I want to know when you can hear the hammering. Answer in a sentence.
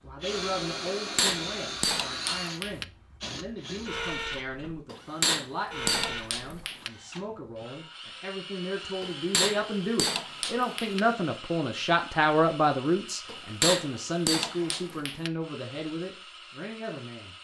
You can hear the hammering from 0.8 to 2.9 s, from 4.9 to 6.9 s, from 9.0 to 11.0 s and from 13.2 to 15.3 s.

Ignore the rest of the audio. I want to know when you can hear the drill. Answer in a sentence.
The drill can be heard from 0.1 to 17.4 s.